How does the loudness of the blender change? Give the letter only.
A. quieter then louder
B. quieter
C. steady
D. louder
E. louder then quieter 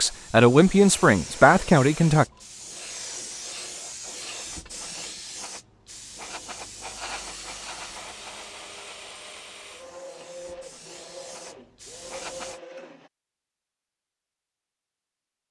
C.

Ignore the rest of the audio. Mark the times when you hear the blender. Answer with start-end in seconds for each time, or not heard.
7.0-13.1.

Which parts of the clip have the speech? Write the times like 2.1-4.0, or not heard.
0.0-2.2.